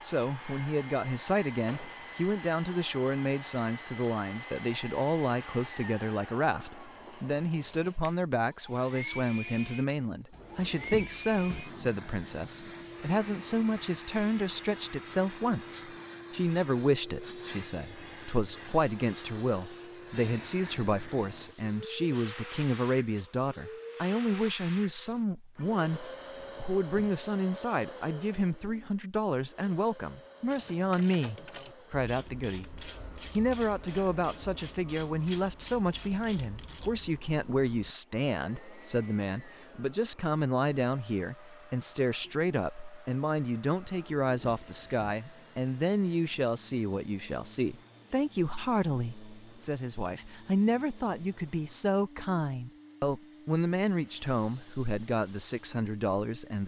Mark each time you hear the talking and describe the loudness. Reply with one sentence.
You can hear the talking from 0.0 to 56.6 s, at a steady volume.